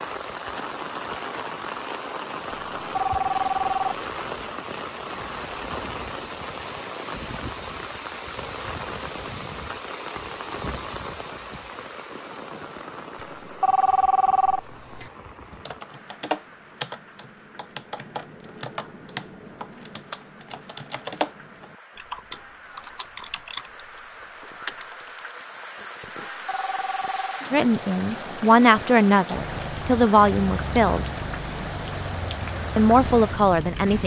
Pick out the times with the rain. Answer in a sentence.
The rain can be heard from 0.0 to 34.0 s.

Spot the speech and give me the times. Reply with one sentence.
The speech can be heard from 27.5 to 31.1 s and from 32.8 to 34.0 s.